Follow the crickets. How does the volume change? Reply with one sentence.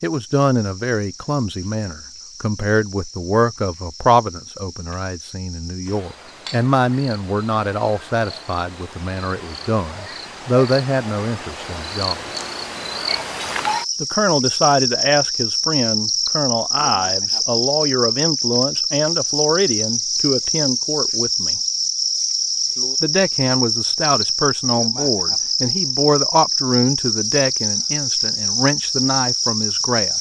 The loudness of the crickets goes up.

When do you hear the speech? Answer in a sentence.
You can hear the speech from 0.0 to 12.2 s, from 14.0 to 21.6 s and from 23.0 to 30.1 s.